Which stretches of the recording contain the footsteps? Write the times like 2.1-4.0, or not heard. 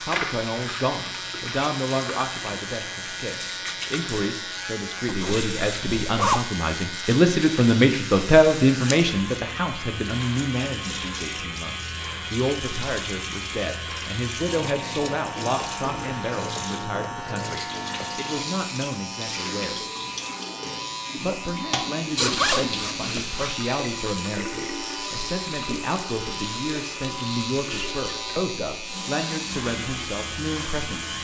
not heard.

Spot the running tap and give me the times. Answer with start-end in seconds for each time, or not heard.
0.0-31.1.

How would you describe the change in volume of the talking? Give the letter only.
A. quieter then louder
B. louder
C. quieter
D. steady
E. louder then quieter
E.